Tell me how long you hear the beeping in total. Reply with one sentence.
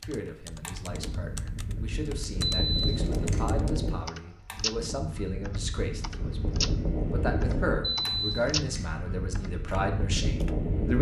The beeping can be heard for 2 seconds in total.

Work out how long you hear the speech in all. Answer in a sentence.
The speech can be heard for 11 seconds in total.